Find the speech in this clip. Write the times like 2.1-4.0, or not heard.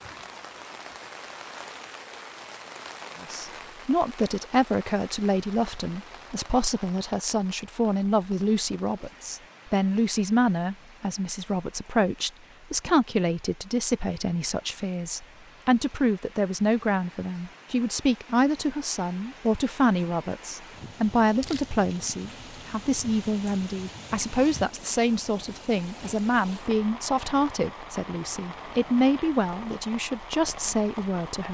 3.2-31.4.